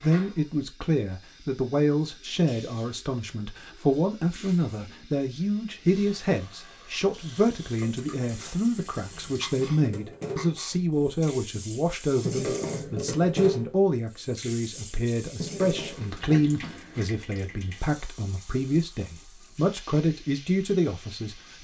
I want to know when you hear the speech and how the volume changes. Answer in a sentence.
You can hear the speech from 0.0 to 21.5 s, at a steady volume.